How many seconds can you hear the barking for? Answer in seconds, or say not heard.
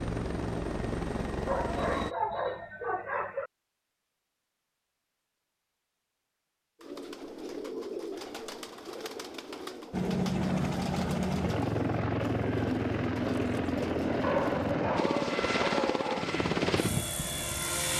4 s.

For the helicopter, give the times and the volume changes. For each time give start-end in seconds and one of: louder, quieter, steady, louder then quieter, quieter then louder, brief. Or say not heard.
0.0-2.1 brief
9.9-17.9 steady.